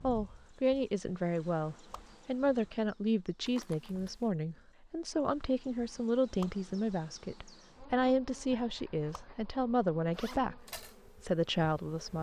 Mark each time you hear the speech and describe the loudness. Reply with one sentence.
You can hear the speech from 0.0 to 12.1 s, at a steady volume.